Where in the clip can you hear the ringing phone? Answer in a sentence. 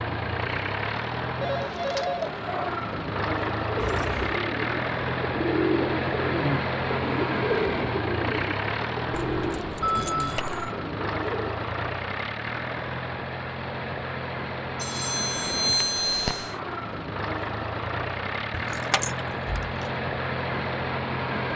The ringing phone can be heard from 1.4 to 2.2 s, from 9.8 to 10.4 s and from 14.8 to 16.5 s.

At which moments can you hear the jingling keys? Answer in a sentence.
The jingling keys can be heard from 3.8 to 4.4 s, from 9.1 to 10.7 s and from 18.5 to 19.7 s.